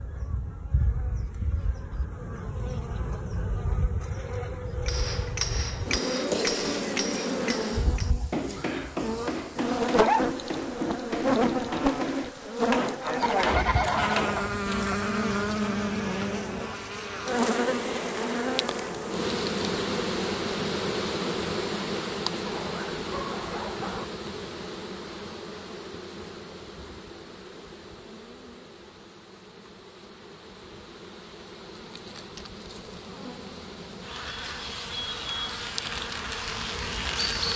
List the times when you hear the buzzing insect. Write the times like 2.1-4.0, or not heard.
0.0-37.5.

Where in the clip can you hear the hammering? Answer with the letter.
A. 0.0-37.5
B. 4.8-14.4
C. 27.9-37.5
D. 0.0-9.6
B.